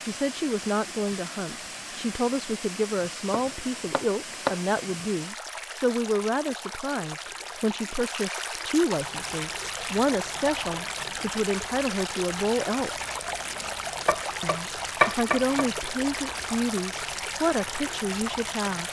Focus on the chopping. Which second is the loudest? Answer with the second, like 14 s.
15 s.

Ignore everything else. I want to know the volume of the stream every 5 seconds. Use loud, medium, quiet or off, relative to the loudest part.
medium, loud, loud, loud.